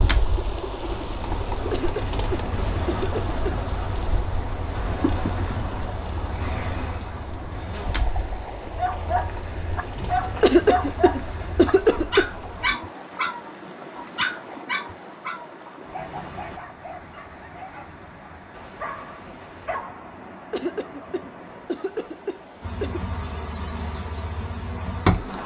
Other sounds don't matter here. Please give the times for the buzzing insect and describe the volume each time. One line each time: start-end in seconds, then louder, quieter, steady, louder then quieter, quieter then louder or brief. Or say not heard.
0.0-12.8 quieter
22.6-25.4 brief.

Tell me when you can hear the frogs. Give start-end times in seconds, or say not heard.
not heard.